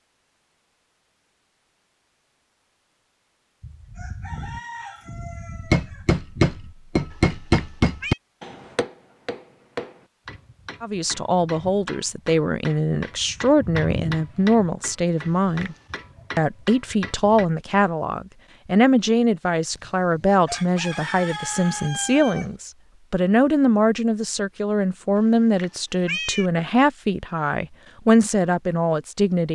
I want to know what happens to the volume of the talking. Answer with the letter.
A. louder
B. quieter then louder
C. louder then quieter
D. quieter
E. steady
E.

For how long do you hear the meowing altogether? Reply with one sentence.
You can hear the meowing for 3 seconds altogether.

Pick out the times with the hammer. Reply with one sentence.
You can hear the hammer from 5.7 to 17.4 s.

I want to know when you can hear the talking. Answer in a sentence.
You can hear the talking from 10.8 to 15.8 s and from 16.4 to 29.5 s.